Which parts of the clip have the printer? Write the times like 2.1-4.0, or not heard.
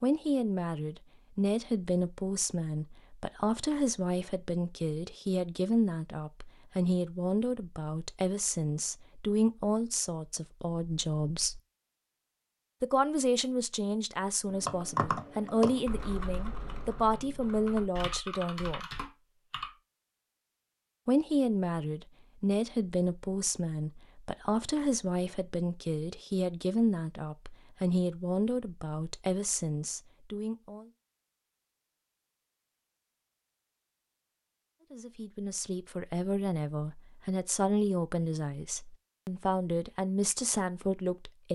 not heard.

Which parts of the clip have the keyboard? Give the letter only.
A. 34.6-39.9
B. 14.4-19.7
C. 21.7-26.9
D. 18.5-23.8
B.